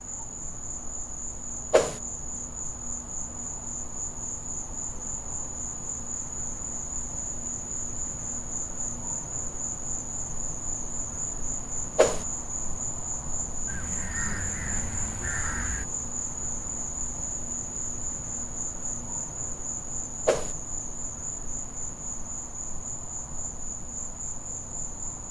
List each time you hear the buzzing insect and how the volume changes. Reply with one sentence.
The buzzing insect can be heard from 0.0 to 25.2 s, at a steady volume.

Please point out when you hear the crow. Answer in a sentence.
You can hear the crow from 13.7 to 15.8 s.